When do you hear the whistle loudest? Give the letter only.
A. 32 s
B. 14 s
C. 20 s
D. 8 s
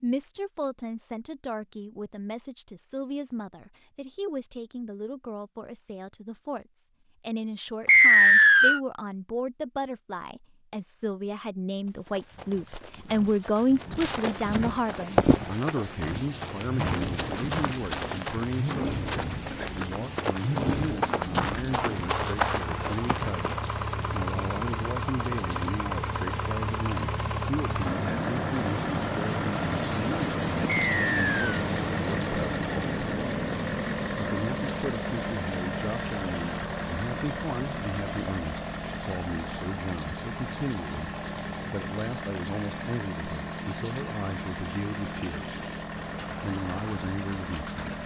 D.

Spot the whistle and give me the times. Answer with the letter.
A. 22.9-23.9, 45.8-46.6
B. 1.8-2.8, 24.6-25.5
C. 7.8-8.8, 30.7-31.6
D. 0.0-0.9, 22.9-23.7
C.